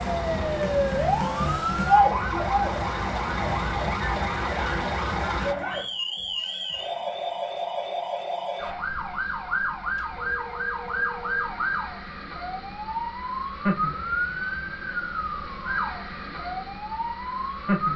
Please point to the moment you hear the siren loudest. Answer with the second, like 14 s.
2 s.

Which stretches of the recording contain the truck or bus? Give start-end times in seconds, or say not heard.
0.0-5.5.